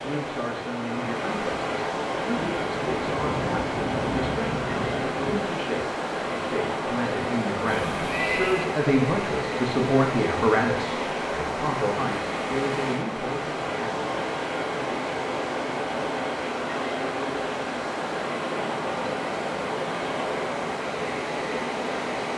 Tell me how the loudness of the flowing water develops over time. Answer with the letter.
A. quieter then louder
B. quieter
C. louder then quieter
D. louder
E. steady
E.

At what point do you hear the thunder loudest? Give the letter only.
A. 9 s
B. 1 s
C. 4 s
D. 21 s
C.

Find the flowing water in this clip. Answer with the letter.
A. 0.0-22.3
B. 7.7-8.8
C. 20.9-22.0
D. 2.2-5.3
A.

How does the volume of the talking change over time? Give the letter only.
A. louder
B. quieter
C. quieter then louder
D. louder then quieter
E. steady
D.